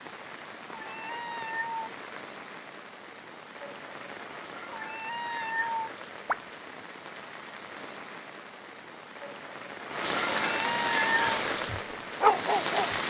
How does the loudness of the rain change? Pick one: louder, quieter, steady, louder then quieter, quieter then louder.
louder.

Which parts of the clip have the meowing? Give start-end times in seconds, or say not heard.
0.8-1.9, 4.7-6.4, 10.4-11.2.